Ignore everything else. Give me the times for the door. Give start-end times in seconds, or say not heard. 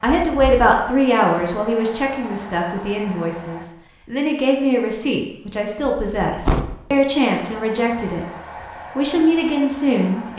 0.1-0.7, 5.8-6.8.